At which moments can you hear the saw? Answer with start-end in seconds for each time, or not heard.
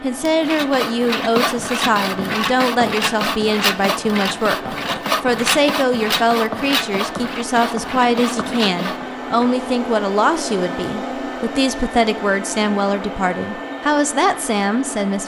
0.2-9.2.